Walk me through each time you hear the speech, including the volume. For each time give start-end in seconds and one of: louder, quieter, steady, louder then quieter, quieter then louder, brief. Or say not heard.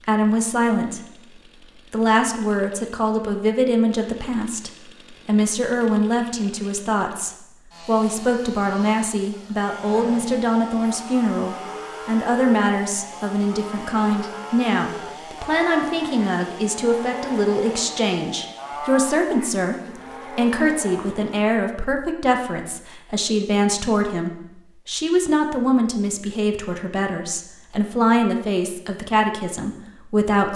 0.0-30.5 steady.